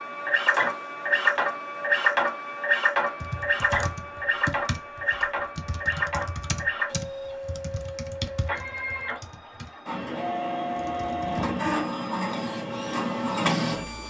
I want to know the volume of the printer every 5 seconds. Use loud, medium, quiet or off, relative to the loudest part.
loud, medium, loud.